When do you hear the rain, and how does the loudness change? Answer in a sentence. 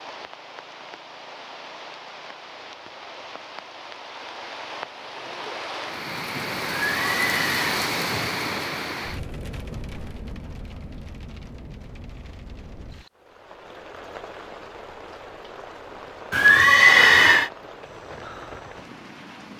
The rain can be heard from 0.0 to 19.5 s, getting louder then quieter.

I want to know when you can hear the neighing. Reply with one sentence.
The neighing can be heard from 6.8 to 7.8 s and from 16.3 to 17.5 s.